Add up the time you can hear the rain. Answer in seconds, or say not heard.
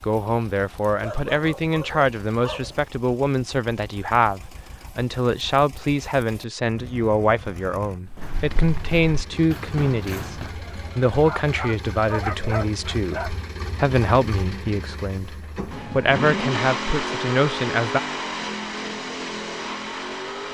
not heard.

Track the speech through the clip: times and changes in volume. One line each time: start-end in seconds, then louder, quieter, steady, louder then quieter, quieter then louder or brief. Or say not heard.
0.0-18.0 steady.